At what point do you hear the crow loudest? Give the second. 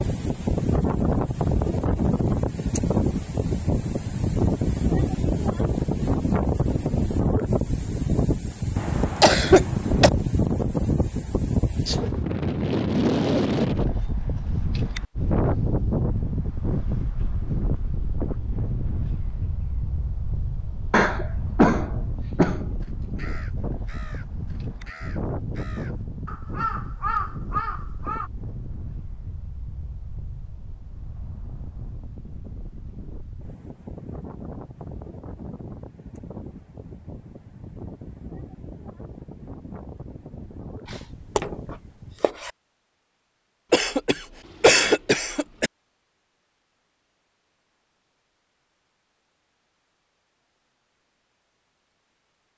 27 s.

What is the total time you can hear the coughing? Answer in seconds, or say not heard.
5 s.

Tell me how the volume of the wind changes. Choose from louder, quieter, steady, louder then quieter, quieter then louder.
quieter.